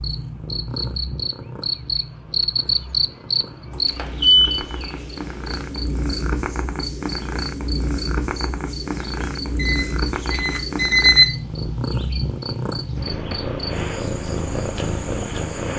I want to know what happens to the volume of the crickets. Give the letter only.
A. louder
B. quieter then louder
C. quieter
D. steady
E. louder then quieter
C.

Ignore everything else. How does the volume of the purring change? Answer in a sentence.
The loudness of the purring goes up.